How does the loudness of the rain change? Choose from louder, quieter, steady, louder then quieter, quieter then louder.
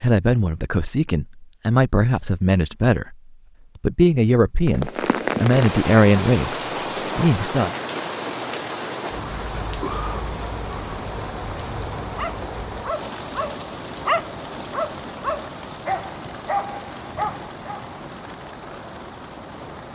quieter.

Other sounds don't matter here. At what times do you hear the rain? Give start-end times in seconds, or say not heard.
4.7-19.8.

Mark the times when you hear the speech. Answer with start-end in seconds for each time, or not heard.
0.0-7.8.